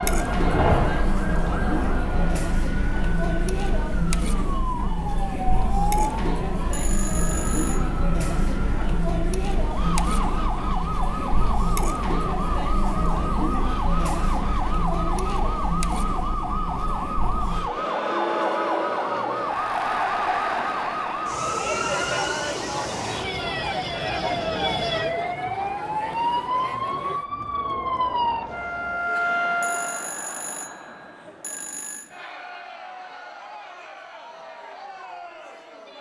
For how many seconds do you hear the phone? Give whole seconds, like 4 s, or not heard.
4 s.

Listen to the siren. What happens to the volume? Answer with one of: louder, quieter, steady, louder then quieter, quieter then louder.
louder.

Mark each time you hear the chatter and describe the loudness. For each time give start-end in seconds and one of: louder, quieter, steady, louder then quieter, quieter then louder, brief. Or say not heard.
0.0-35.9 quieter.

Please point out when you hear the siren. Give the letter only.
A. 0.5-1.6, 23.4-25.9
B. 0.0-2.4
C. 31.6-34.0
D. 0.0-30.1
D.